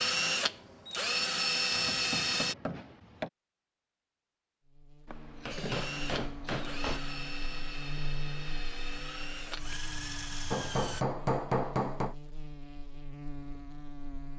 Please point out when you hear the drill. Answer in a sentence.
You can hear the drill from 0.0 to 2.5 s and from 5.5 to 11.1 s.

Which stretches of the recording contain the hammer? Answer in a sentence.
The hammer can be heard from 1.8 to 3.3 s, from 5.0 to 7.0 s and from 10.5 to 12.2 s.